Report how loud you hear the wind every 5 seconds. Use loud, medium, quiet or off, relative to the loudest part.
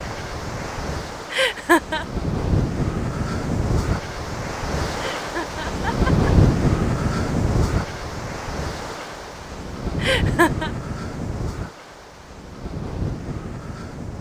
loud, loud, medium.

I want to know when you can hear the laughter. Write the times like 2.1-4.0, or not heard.
1.3-2.0, 5.0-6.3, 10.0-10.7.